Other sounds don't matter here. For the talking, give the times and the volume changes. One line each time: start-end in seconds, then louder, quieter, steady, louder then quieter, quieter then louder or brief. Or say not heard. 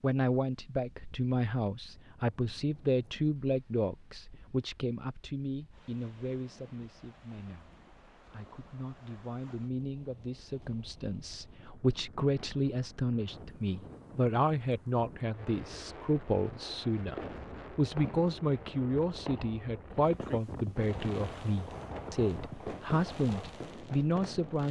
0.0-24.6 quieter then louder.